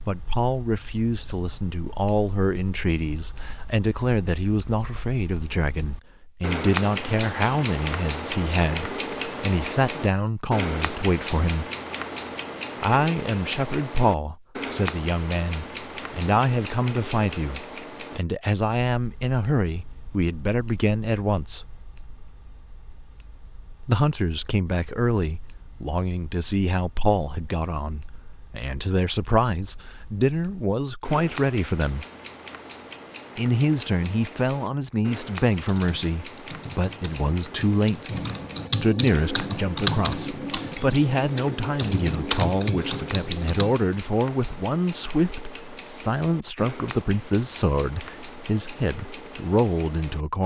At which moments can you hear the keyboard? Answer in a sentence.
The keyboard can be heard from 35.5 to 43.9 s.